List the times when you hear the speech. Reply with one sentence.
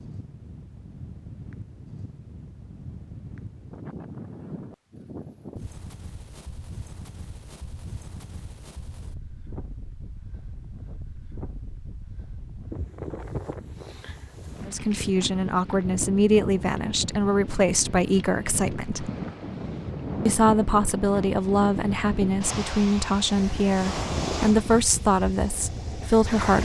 The speech can be heard from 14.7 to 19.1 s and from 20.2 to 26.6 s.